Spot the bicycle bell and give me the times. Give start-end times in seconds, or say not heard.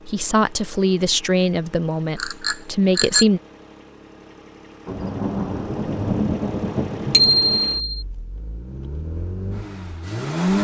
2.1-3.2, 7.1-8.1.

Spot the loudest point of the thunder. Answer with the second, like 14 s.
6 s.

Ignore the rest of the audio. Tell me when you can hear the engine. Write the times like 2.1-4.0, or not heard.
0.0-10.5.